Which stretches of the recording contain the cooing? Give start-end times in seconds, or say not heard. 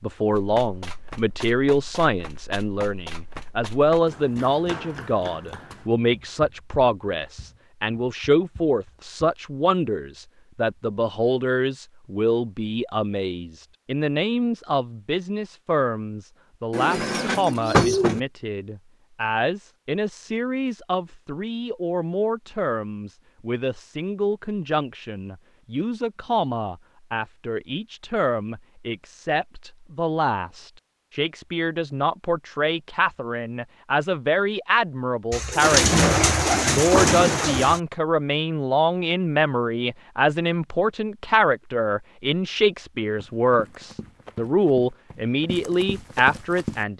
16.7-18.2, 35.3-37.8.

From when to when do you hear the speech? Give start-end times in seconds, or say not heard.
0.0-46.9.